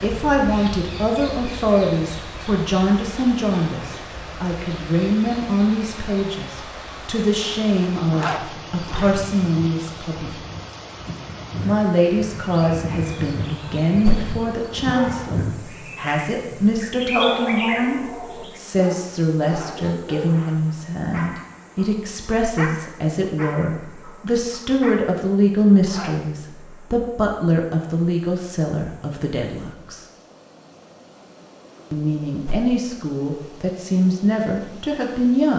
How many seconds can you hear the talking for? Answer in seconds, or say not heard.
32 s.